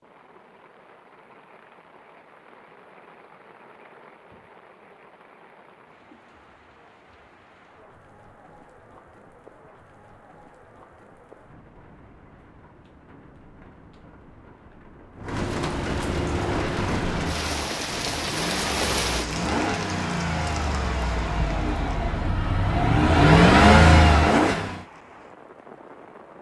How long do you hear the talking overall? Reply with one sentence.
The talking can't be heard in this clip.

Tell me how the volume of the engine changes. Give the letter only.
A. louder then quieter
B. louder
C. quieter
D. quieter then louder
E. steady
B.